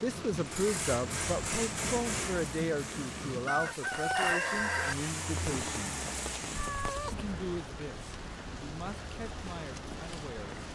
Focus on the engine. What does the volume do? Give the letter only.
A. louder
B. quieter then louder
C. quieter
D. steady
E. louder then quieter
B.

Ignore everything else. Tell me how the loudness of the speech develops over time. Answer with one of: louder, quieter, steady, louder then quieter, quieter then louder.
quieter.